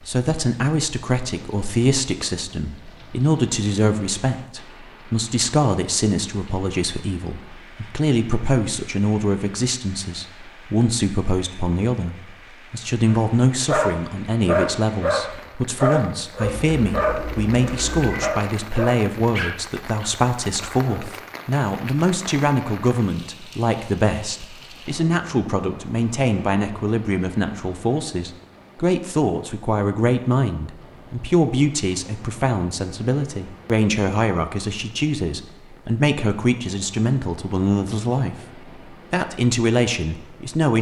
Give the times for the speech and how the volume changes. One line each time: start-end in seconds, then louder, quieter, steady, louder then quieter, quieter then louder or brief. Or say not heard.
0.1-38.4 steady
39.1-40.7 brief.